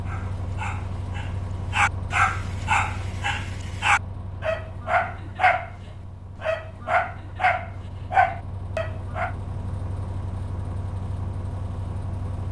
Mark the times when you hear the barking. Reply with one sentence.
You can hear the barking from 0.1 to 5.7 s and from 6.3 to 9.3 s.